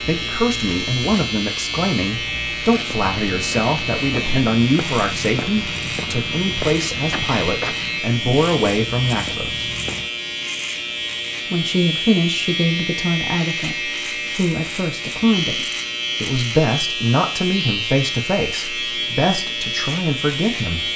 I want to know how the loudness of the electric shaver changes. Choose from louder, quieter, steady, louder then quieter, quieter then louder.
steady.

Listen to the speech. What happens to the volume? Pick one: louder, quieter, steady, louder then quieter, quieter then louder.
steady.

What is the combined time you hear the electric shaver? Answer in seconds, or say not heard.
21 s.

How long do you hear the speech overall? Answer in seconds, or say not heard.
19 s.